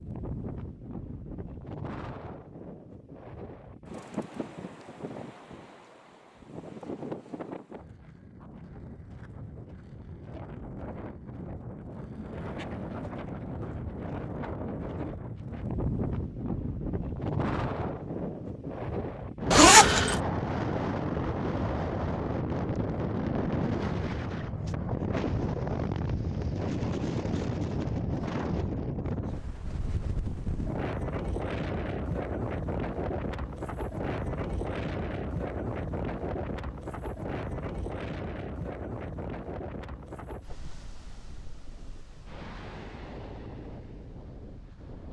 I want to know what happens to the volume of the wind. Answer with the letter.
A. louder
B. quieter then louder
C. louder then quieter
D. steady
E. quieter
C.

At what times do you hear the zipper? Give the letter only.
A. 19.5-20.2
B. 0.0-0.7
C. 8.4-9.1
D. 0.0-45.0
A.